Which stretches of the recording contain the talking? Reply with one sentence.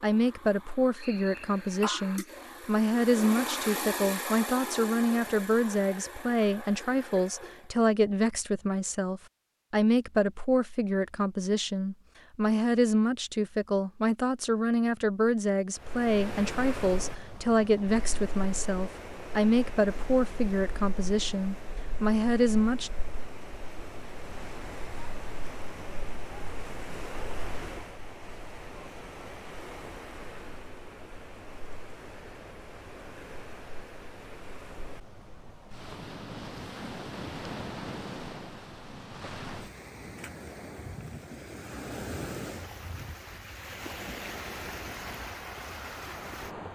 The talking can be heard from 0.0 to 22.9 s.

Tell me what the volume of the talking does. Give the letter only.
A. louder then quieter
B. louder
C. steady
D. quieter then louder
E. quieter
C.